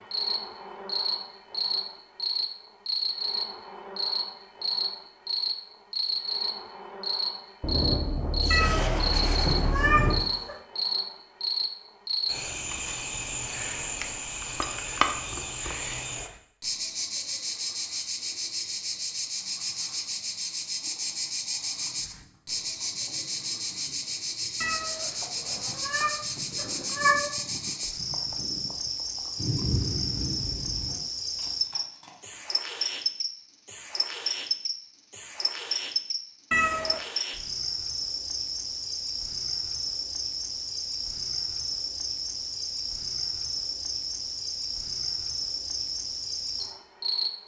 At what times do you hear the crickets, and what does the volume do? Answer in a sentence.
You can hear the crickets from 0.0 to 47.3 s, at a steady volume.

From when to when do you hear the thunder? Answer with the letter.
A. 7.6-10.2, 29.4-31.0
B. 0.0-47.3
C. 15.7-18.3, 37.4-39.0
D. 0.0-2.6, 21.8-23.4
A.